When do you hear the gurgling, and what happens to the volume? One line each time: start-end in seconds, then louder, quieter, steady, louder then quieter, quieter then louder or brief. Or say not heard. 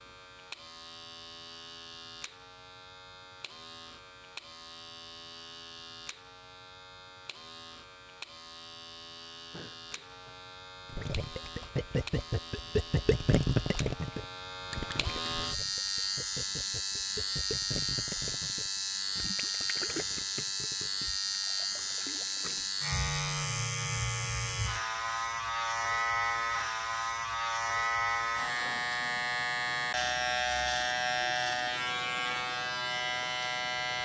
10.9-22.7 quieter.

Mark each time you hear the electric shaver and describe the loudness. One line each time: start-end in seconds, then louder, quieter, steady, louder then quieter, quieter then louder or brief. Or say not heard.
0.0-33.9 louder.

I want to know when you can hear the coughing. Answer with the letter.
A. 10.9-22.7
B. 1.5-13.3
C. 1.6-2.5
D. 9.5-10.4
D.